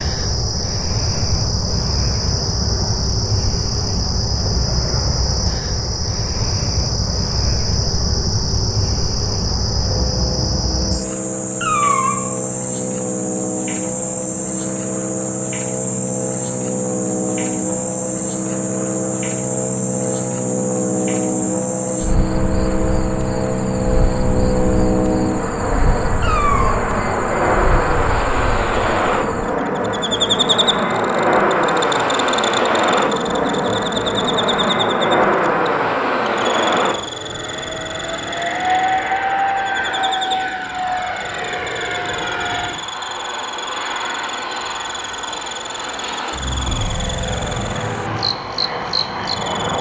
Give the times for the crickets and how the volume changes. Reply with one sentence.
You can hear the crickets from 0.0 to 49.7 s, getting quieter.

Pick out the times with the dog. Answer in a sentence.
You can't hear the dog here.